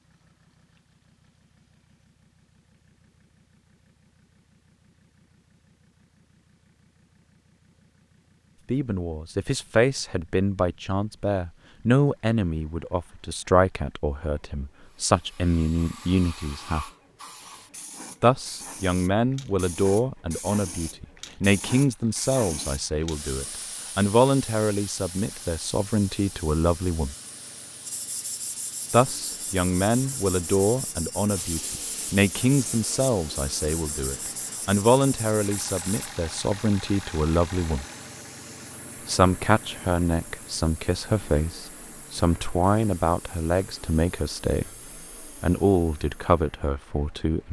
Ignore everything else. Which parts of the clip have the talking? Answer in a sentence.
You can hear the talking from 8.7 to 16.9 s, from 18.2 to 27.1 s, from 28.9 to 37.9 s, from 39.0 to 44.7 s and from 45.4 to 47.4 s.